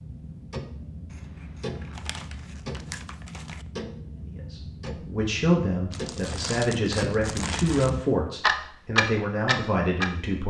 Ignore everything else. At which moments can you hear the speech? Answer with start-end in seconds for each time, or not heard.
4.2-10.4.